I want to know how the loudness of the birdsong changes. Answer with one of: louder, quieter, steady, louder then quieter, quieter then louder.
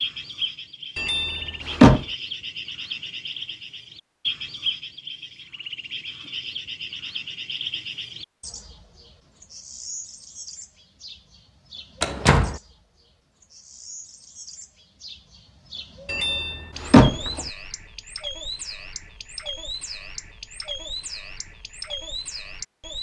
quieter then louder.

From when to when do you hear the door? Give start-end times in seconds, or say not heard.
0.9-2.0, 12.0-12.6, 16.1-17.4.